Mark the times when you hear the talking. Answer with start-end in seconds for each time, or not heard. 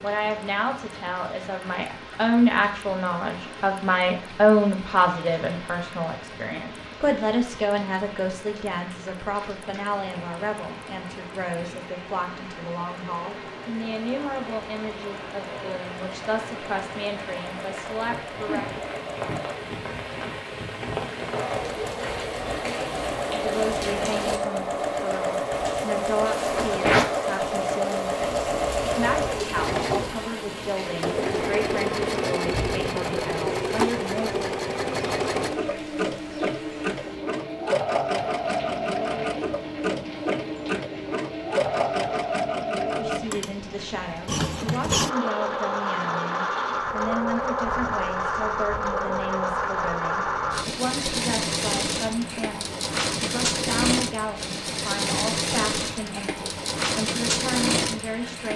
0.0-18.6, 23.3-34.6, 43.0-58.5.